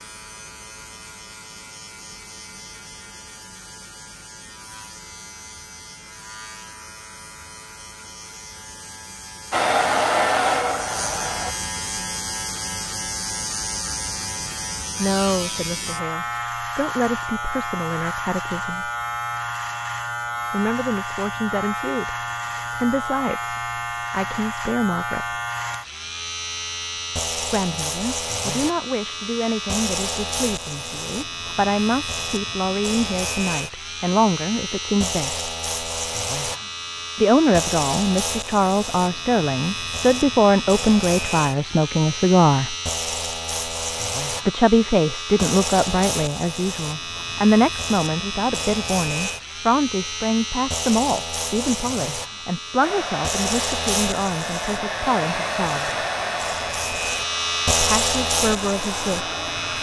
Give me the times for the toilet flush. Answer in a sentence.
The toilet flush can't be heard in this clip.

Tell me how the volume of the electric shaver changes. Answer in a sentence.
The loudness of the electric shaver goes up.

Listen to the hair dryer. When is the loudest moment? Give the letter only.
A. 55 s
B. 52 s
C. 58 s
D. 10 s
D.